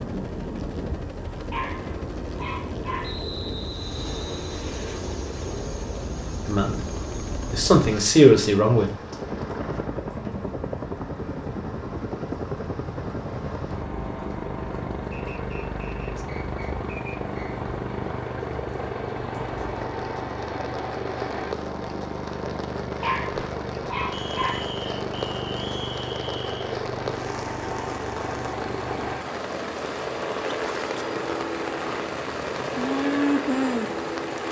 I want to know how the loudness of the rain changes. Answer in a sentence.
The loudness of the rain goes up.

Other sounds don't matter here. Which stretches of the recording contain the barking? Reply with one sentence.
The barking can be heard from 1.5 to 3.2 s and from 23.0 to 24.8 s.